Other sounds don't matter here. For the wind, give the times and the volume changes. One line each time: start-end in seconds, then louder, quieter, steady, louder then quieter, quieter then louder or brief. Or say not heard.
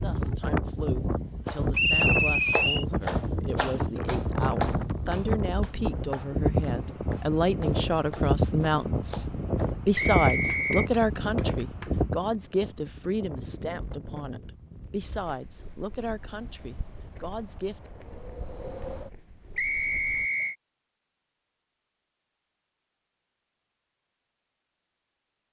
0.0-20.2 quieter.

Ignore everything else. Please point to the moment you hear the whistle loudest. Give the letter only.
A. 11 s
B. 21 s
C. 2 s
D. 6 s
C.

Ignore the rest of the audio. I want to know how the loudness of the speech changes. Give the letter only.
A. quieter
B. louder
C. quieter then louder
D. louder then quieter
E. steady
D.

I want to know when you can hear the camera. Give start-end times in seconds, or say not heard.
not heard.